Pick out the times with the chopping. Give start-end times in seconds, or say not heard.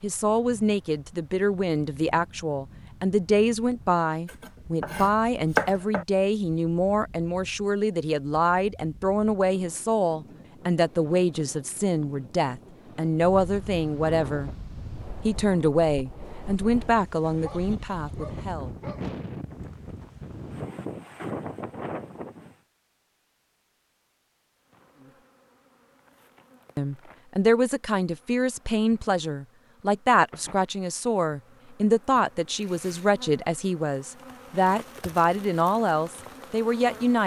4.2-6.0.